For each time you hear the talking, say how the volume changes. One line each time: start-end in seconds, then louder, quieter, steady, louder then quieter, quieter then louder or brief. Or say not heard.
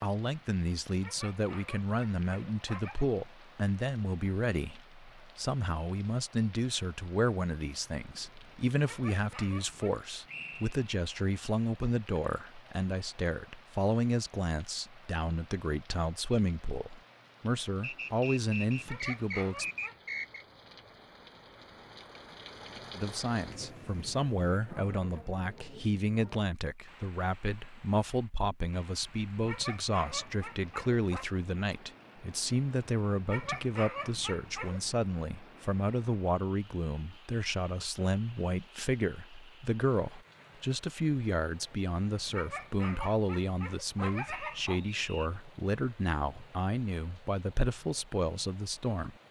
0.0-19.6 steady
22.9-49.1 steady.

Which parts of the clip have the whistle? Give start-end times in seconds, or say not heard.
10.2-10.9, 17.8-20.4, 44.2-45.3.